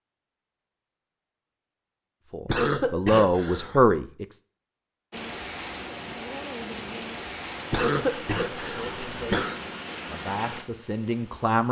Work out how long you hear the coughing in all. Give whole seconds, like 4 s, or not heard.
3 s.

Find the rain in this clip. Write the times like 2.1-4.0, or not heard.
5.1-11.6.